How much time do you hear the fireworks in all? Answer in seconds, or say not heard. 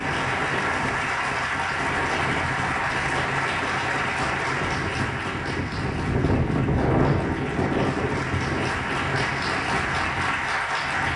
not heard.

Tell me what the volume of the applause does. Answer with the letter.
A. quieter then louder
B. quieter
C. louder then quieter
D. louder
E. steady
A.